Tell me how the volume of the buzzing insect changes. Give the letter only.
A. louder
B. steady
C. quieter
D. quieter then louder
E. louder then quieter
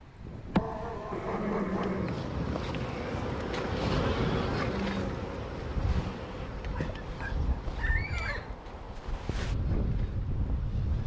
C.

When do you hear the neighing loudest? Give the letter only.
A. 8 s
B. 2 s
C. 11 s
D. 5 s
B.